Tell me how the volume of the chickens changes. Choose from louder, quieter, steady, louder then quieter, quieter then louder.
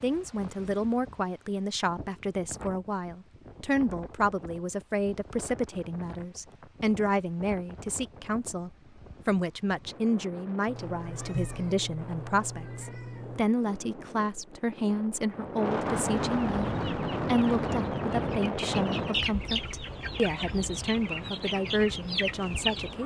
louder.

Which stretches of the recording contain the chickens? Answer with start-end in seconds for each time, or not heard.
16.6-23.0.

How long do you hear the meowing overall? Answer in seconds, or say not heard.
3 s.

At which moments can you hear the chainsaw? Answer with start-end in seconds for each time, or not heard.
not heard.